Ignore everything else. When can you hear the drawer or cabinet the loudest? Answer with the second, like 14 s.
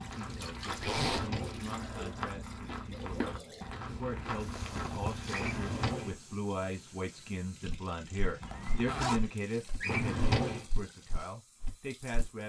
10 s.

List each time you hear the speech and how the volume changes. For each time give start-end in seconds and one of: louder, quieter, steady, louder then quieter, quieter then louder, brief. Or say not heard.
0.0-12.4 louder then quieter.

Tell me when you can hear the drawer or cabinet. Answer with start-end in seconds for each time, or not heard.
0.8-1.6, 5.3-6.2, 9.8-10.7.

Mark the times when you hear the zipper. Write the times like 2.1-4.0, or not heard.
0.8-1.3, 4.3-5.3, 8.4-9.3.